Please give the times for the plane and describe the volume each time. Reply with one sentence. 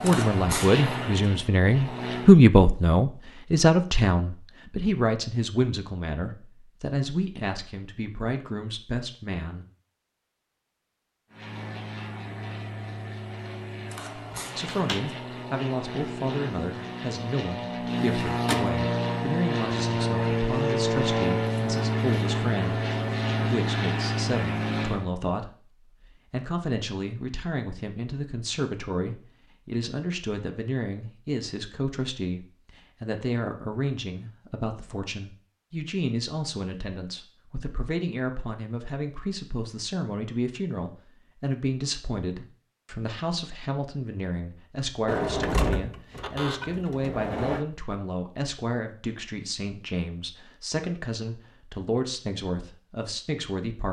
The plane can be heard briefly from 0.0 to 2.4 s; and from 11.3 to 25.1 s, getting louder.